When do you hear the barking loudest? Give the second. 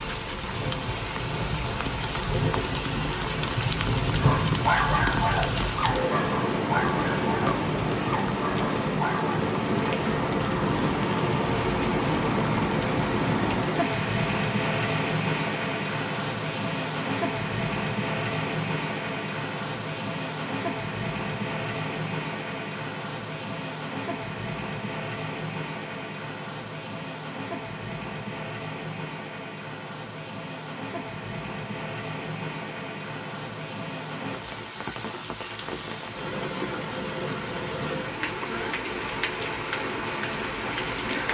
5 s.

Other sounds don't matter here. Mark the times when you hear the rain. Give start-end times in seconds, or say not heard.
0.0-41.2.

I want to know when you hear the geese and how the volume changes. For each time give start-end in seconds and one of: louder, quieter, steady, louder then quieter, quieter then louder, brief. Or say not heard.
not heard.